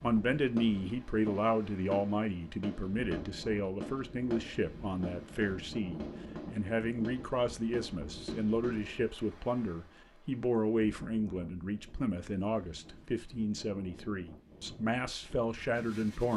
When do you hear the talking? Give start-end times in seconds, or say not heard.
0.0-16.3.